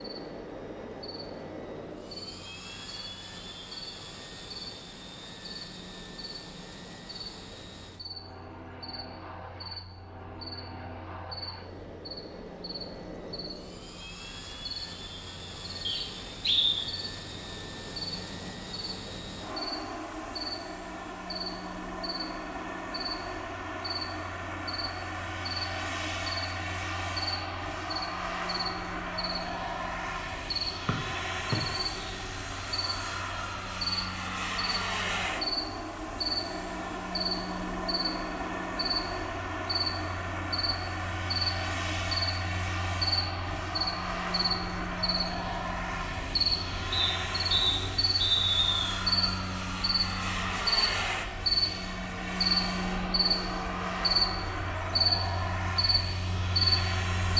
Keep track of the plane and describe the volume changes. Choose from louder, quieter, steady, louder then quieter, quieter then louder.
louder.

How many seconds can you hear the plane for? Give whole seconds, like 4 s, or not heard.
57 s.